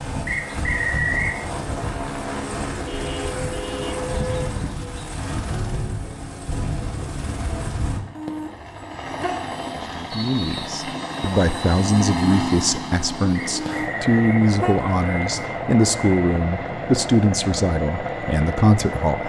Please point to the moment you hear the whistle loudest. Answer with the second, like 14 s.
1 s.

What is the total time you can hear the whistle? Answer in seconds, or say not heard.
3 s.